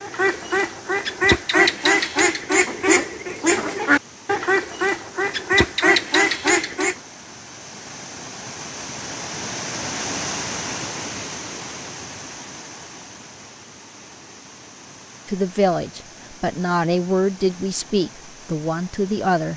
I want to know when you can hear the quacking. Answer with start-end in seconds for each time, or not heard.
0.0-7.0.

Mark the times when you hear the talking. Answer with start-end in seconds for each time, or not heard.
15.2-19.5.